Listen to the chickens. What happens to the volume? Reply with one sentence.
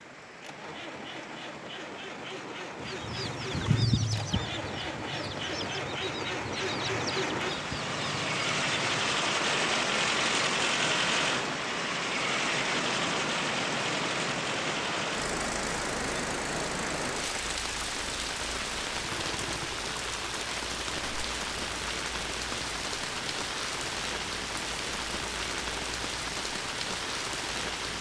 The volume of the chickens goes down.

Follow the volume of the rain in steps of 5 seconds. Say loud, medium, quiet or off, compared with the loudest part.
quiet, loud, loud, loud, loud, loud.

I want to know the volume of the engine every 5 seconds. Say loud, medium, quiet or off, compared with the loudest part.
medium, loud, loud, medium, quiet, quiet.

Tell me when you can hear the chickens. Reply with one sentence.
You can hear the chickens from 2.8 to 9.2 s.